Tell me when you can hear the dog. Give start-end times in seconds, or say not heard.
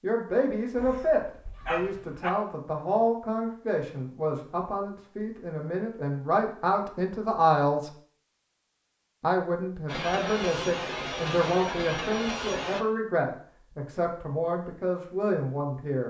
0.8-2.3.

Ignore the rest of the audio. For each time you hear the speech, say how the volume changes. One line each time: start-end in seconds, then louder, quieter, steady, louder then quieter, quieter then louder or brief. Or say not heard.
0.0-7.9 quieter then louder
9.2-16.0 steady.